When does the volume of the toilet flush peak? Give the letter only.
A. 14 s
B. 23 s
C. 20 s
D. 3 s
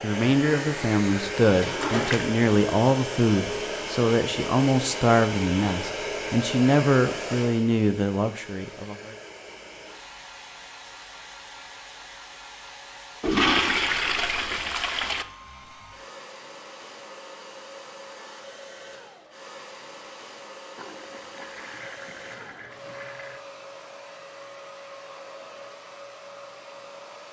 A.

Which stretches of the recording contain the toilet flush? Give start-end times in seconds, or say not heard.
1.5-2.3, 13.2-15.2, 20.8-23.4.